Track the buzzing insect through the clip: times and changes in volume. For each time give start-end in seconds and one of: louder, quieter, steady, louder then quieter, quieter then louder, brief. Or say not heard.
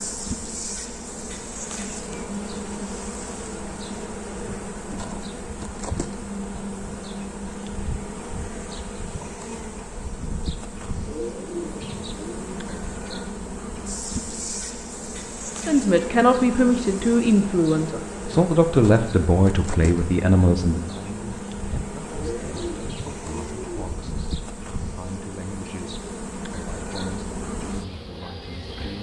0.0-28.9 steady.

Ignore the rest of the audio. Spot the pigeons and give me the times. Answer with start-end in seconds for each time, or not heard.
11.0-12.6, 22.1-24.0.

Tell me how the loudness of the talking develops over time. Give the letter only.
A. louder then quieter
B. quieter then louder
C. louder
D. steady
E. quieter
E.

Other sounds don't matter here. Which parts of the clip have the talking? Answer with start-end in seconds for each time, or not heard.
15.7-28.9.